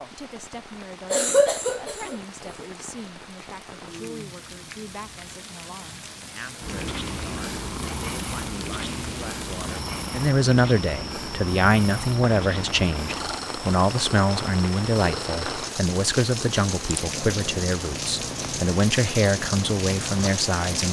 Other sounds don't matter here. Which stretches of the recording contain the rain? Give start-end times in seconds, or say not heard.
0.0-20.8.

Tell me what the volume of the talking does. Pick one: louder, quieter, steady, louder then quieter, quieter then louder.
louder.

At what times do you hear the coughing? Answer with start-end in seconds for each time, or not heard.
1.1-2.6.